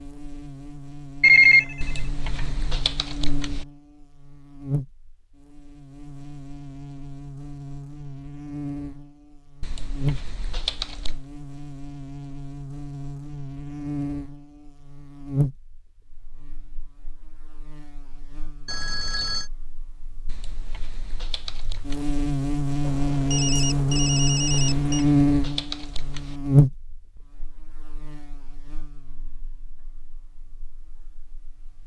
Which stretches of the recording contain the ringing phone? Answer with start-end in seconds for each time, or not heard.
1.2-2.5, 18.6-19.5, 22.8-25.1.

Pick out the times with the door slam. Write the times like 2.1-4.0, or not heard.
not heard.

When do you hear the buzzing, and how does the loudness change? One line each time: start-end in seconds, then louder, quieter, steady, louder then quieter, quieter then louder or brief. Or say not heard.
0.0-31.8 louder.